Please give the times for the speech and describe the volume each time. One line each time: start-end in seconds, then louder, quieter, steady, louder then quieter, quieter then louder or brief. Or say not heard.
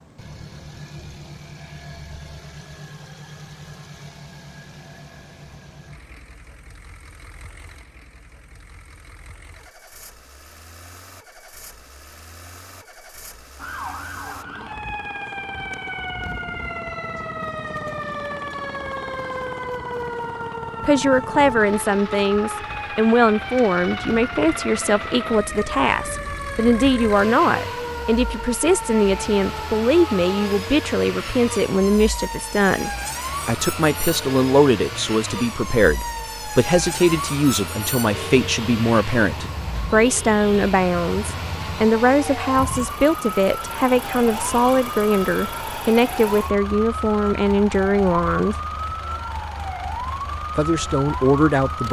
20.8-48.5 steady
50.5-51.8 brief.